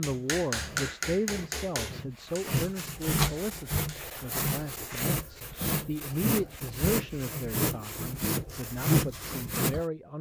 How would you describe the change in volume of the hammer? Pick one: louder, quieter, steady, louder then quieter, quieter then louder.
quieter.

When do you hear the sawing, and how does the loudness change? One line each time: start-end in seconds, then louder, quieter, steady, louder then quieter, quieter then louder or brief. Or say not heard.
0.0-9.8 louder.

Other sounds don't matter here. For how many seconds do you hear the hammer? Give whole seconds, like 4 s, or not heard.
4 s.